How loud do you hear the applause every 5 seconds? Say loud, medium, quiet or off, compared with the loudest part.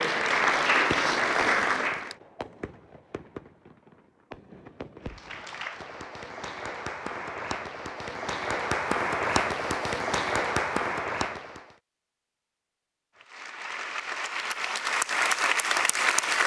loud, medium, medium, loud.